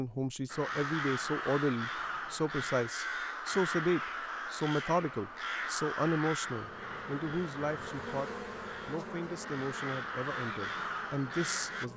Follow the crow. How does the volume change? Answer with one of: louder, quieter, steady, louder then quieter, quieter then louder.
quieter then louder.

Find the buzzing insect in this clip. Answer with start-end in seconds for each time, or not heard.
6.3-11.9.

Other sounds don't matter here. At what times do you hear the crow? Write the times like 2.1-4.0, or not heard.
0.5-11.9.